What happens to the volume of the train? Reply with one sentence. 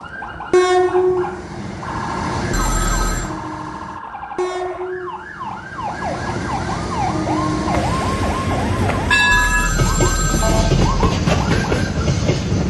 The loudness of the train goes down, then up.